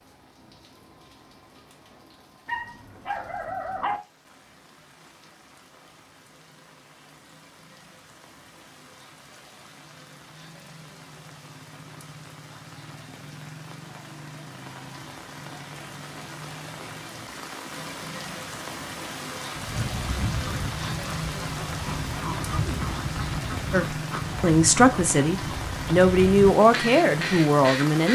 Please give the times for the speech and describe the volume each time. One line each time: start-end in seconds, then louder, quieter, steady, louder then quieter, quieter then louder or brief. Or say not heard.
23.7-28.1 steady.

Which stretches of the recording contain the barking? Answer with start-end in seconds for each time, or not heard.
2.5-4.0.